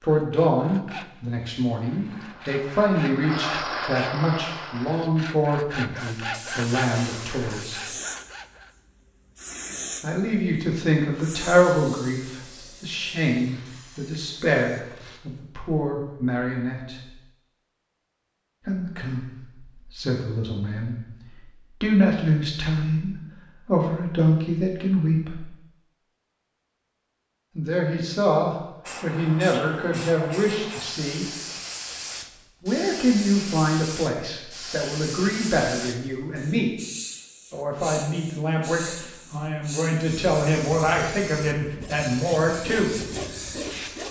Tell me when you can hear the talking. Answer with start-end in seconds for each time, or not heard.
0.0-7.8, 10.0-17.1, 18.6-25.4, 27.6-31.3, 32.6-36.7, 37.5-42.9.